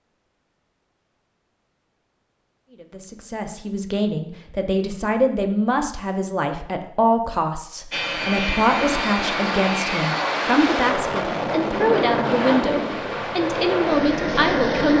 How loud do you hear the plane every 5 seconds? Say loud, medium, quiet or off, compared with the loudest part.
off, loud, loud.